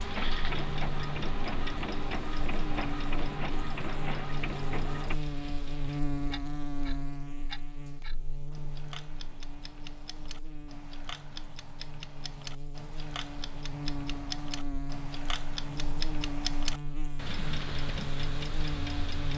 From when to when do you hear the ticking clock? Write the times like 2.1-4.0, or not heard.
0.0-19.3.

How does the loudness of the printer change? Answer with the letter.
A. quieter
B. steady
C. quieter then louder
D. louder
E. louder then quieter
B.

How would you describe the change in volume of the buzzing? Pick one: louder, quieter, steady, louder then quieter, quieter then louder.
quieter then louder.